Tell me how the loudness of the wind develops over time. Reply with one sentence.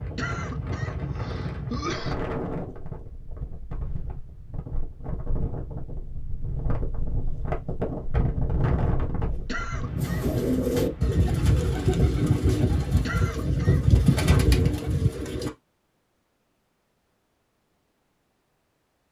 The volume of the wind goes down, then up.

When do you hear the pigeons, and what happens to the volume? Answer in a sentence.
You can hear the pigeons from 9.9 to 15.5 s, at a steady volume.